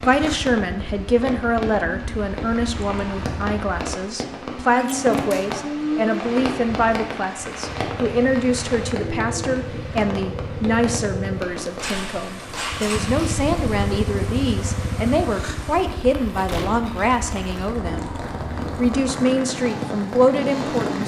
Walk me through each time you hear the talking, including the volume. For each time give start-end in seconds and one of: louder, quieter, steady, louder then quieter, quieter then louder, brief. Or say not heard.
0.1-18.1 steady
18.8-21.0 brief.